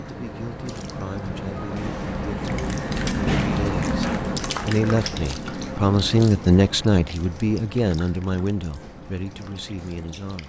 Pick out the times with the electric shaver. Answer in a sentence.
The electric shaver can't be heard in this clip.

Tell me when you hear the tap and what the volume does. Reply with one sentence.
The tap can be heard from 0.0 to 10.4 s, getting louder then quieter.